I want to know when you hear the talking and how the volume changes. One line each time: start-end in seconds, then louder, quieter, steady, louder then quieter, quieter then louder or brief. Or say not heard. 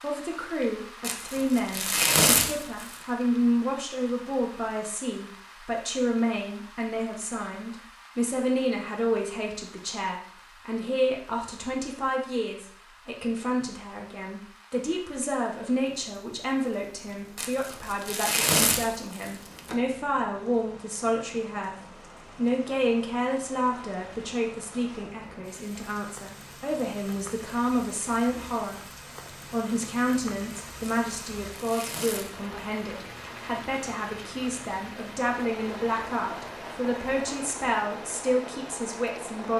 0.0-39.5 steady.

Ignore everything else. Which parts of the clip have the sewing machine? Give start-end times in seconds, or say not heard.
not heard.